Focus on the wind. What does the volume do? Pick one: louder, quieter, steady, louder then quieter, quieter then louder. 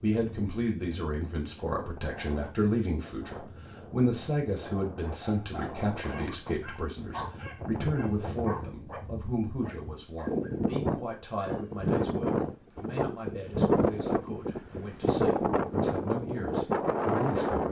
louder.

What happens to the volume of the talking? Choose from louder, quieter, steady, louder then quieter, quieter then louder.
quieter.